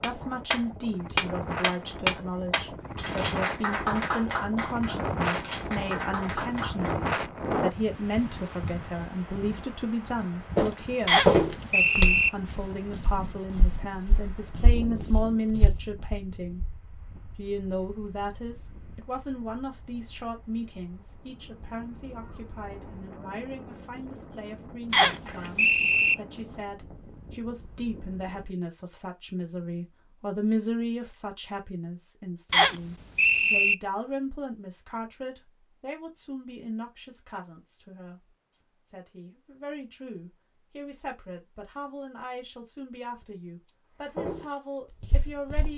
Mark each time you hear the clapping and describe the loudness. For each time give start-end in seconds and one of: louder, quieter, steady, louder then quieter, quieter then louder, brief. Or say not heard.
0.0-7.2 quieter.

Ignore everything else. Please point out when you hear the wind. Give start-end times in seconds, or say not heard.
0.0-28.6.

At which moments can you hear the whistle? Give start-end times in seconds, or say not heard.
11.1-12.3, 24.9-26.1, 32.5-33.8.